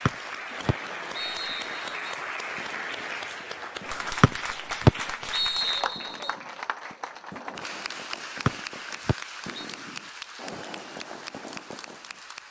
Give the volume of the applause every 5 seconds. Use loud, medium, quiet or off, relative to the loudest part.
loud, loud, medium.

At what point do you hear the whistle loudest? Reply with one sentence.
The loudest moment of the whistle is at 5 seconds.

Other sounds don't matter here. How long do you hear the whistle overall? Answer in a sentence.
The whistle can be heard for 5 seconds in total.